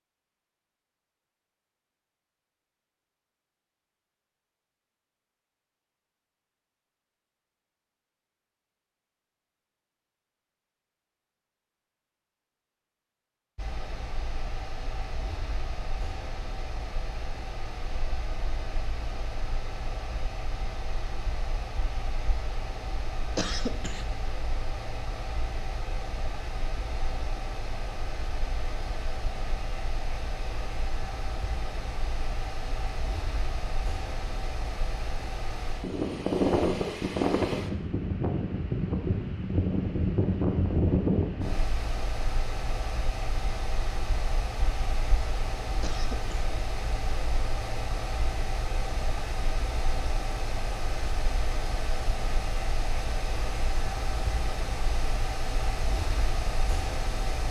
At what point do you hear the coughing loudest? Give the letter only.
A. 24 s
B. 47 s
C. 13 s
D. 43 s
A.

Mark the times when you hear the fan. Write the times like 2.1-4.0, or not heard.
13.6-57.4.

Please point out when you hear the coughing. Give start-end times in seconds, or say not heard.
23.4-24.1, 45.8-46.5.